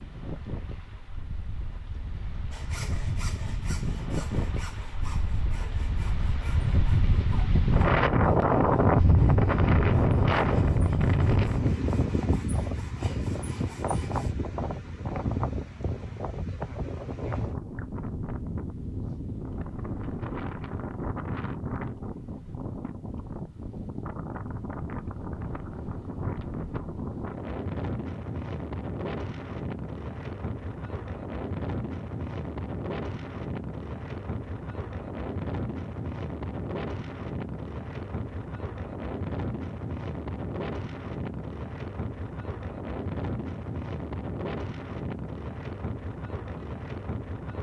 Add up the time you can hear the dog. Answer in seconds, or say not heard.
not heard.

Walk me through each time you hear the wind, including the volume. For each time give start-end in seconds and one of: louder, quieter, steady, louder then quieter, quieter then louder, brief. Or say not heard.
0.0-47.5 quieter.